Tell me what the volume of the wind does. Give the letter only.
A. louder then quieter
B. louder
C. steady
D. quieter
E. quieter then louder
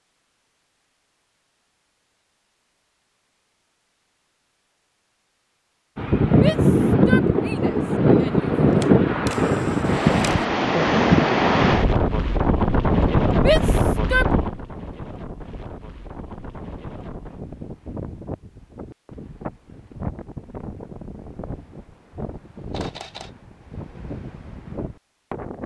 D.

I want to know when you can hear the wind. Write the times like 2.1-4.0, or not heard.
6.0-25.6.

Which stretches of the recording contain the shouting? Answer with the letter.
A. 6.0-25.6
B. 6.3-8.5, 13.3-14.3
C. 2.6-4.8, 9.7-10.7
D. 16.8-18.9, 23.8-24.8
B.